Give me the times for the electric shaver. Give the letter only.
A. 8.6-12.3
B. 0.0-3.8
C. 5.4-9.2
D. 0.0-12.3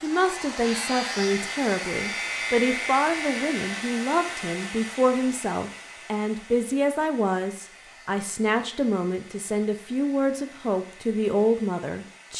B.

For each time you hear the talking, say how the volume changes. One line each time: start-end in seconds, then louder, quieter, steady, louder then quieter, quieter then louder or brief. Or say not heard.
0.0-12.3 steady.